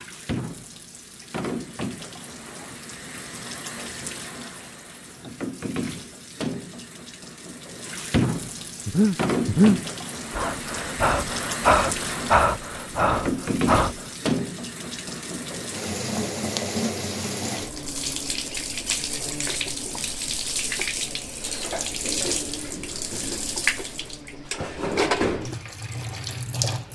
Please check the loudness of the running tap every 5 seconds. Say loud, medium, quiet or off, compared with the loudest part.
medium, loud, loud, loud, loud, loud.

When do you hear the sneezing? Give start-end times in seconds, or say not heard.
not heard.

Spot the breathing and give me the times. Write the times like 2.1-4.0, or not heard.
8.8-14.1.